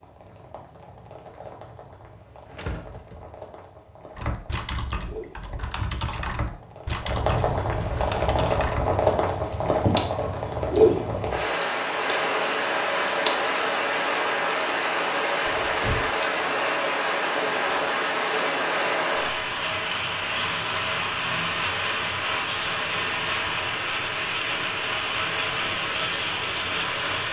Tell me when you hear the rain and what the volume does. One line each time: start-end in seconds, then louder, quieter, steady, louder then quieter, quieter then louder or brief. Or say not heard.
0.0-27.2 louder.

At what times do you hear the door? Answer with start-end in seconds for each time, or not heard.
2.5-3.4, 15.4-16.1.